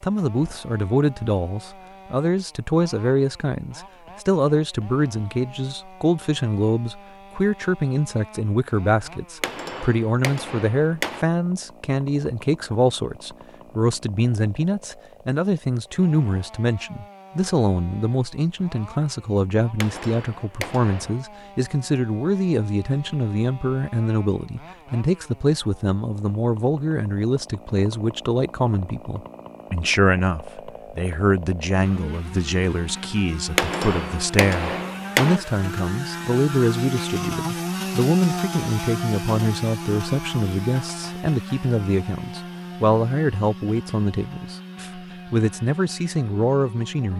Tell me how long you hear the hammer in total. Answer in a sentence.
The hammer can be heard for 5 seconds in total.